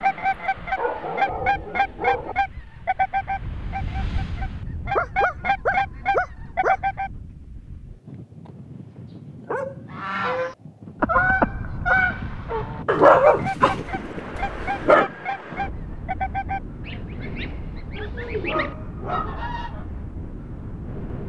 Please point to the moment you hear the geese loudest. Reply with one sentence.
The loudest moment of the geese is at 11 seconds.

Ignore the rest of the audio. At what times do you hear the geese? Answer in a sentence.
The geese can be heard from 0.0 to 7.1 s and from 9.9 to 19.9 s.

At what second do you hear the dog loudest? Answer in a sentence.
The loudest moment of the dog is at 13 seconds.